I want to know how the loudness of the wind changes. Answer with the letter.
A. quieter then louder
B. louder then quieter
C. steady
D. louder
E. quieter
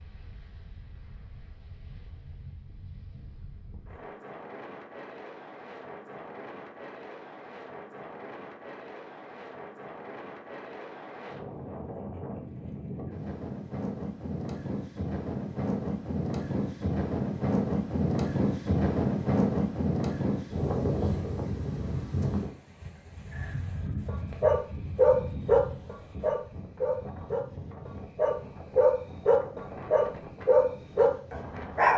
B.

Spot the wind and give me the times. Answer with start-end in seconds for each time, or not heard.
0.0-31.9.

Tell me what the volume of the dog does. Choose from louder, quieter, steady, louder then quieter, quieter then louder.
quieter then louder.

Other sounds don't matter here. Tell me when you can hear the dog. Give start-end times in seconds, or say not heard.
24.1-31.9.